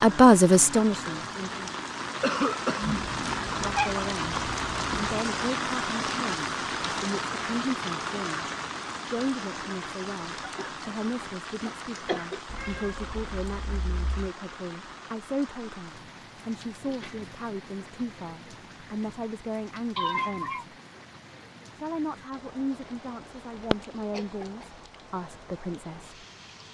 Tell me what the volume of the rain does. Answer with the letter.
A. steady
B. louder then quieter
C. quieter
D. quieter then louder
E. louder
C.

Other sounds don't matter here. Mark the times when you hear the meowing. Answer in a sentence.
You can hear the meowing from 3.0 to 5.2 s, from 12.4 to 14.3 s and from 19.9 to 20.6 s.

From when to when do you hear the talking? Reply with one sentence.
You can hear the talking from 0.0 to 1.8 s, from 3.5 to 20.6 s and from 21.7 to 26.2 s.